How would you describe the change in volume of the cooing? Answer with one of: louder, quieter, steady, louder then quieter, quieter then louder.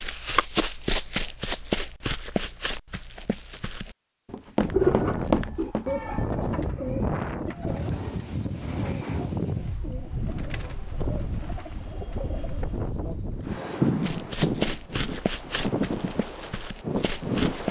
quieter.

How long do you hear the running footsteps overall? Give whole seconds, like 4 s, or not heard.
10 s.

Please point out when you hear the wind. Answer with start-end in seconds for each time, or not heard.
4.6-17.6.